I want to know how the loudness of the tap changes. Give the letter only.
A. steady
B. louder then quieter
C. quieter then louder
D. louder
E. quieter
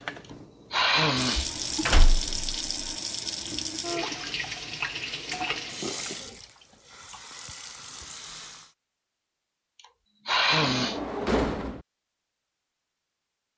E.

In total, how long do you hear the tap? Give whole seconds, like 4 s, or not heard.
9 s.